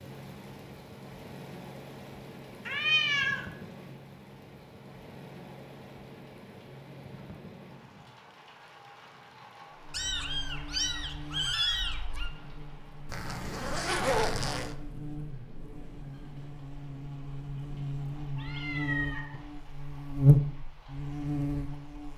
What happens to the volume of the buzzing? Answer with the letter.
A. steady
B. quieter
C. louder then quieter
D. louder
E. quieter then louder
D.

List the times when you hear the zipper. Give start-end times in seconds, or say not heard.
13.1-14.8.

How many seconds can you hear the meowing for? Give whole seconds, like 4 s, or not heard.
4 s.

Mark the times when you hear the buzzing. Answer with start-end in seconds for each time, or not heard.
9.7-22.1.